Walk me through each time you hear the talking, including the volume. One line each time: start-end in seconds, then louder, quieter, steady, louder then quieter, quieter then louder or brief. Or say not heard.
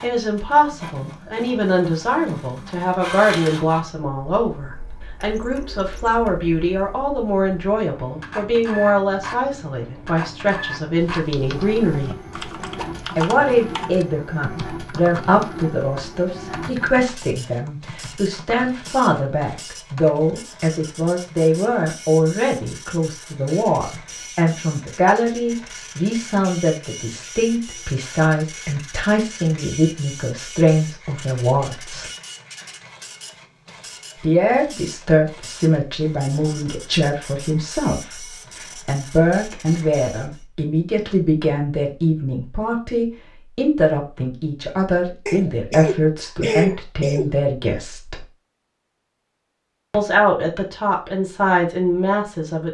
0.0-12.2 steady
13.2-32.0 steady
34.2-48.2 steady
49.9-52.6 brief.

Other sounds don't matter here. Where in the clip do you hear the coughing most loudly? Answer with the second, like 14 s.
47 s.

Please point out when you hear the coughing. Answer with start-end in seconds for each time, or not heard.
45.2-47.4.